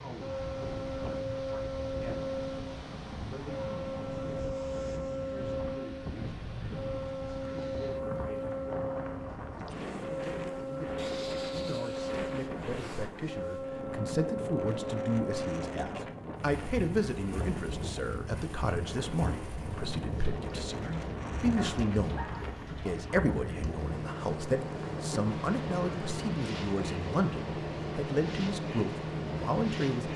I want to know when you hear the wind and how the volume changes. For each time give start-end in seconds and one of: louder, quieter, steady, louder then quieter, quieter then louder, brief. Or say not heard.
0.0-30.1 steady.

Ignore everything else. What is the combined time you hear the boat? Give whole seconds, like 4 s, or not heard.
30 s.